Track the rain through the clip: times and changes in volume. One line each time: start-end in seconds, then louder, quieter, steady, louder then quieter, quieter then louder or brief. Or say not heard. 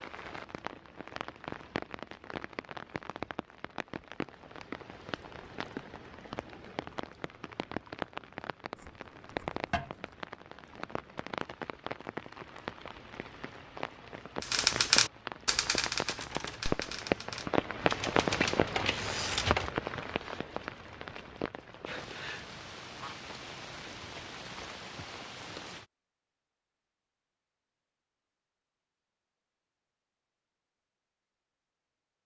0.0-25.9 louder then quieter.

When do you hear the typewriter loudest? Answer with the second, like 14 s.
15 s.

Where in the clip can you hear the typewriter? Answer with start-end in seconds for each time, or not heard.
14.4-19.7.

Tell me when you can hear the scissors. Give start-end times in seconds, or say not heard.
8.8-10.1.